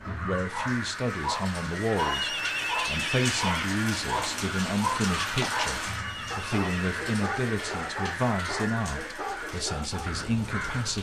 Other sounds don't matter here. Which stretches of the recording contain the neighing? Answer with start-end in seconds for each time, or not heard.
1.9-3.7, 6.0-6.9.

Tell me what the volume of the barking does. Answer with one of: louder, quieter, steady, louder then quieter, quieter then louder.
quieter.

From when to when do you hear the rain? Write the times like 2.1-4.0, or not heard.
0.0-10.9.